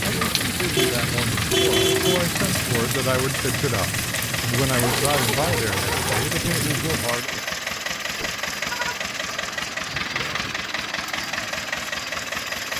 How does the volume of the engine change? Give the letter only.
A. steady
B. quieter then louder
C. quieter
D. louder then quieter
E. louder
A.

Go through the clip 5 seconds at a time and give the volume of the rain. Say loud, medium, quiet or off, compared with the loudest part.
loud, loud, off.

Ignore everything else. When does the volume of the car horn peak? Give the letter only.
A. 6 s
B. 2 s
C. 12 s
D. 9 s
B.